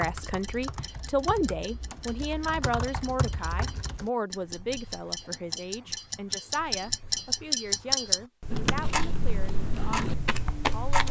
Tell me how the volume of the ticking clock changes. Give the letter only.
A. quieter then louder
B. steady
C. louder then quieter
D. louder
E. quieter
C.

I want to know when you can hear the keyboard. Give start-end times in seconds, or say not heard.
0.0-4.1, 8.5-11.0.